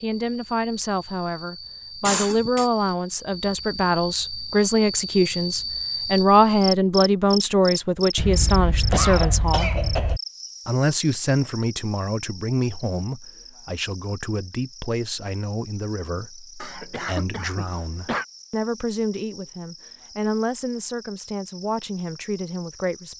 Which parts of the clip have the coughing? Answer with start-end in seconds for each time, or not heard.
2.0-2.7, 8.2-10.2, 16.6-18.2.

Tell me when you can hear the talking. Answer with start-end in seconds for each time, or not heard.
0.0-9.7, 10.7-23.1.